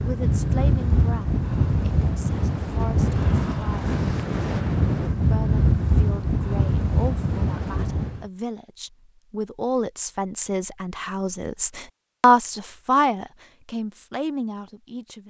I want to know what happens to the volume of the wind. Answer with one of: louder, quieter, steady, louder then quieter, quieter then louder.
steady.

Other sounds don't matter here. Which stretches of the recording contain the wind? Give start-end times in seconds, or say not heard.
0.0-8.2.